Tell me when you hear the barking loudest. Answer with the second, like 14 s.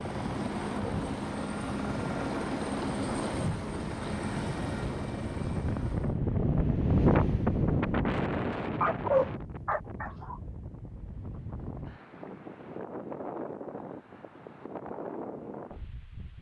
9 s.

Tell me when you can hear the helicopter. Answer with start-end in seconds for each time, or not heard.
0.0-6.2.